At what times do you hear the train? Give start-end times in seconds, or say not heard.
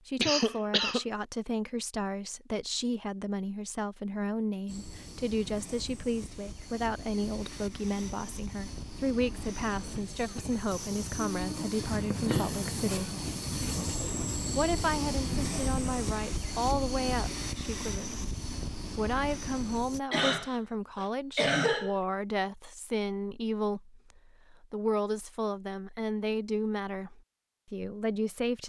4.7-20.0.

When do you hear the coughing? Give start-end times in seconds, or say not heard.
0.1-1.1, 11.9-12.6, 20.1-21.9.